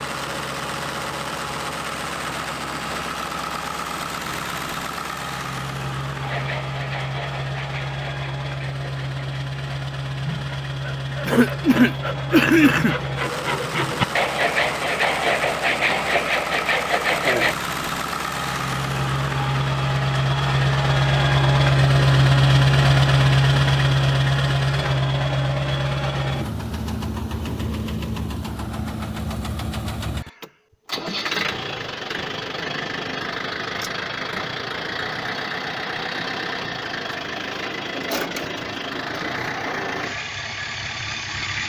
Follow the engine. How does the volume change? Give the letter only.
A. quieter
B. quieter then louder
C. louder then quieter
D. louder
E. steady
C.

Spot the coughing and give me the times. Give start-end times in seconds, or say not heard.
11.2-12.9.